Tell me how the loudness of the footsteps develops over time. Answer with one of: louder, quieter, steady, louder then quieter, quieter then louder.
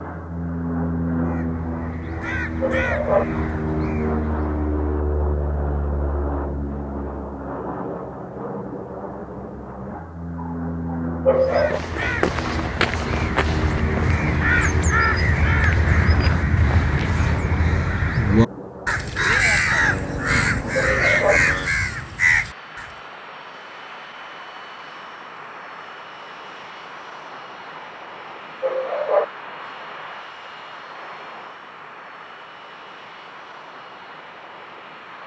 quieter.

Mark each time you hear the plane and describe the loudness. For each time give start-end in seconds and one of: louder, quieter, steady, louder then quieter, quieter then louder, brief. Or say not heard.
0.0-35.2 quieter.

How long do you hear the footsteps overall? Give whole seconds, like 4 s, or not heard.
6 s.